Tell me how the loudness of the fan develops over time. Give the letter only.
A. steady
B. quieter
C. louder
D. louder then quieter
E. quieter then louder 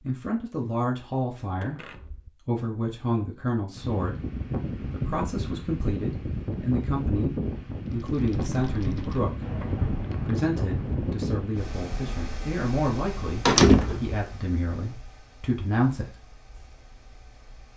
B.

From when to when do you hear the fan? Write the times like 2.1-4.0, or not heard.
3.8-17.7.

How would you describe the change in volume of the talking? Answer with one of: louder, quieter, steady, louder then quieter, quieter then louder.
steady.